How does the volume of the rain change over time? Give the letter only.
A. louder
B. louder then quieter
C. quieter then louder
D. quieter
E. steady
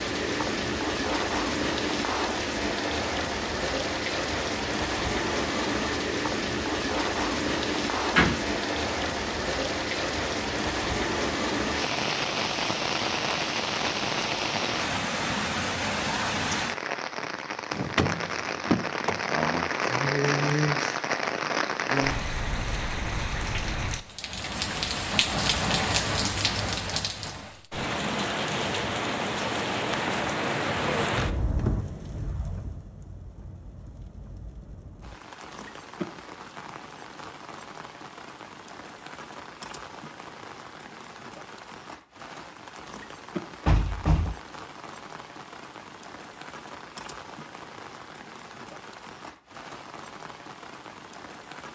D.